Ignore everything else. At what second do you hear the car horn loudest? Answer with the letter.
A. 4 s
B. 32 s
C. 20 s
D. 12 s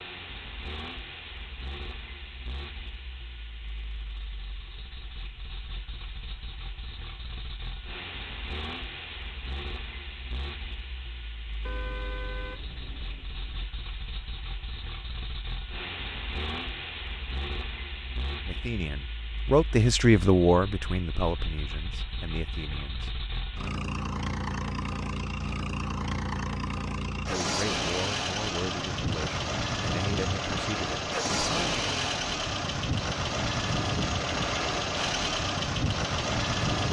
D.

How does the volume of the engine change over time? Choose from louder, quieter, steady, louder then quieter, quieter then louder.
louder.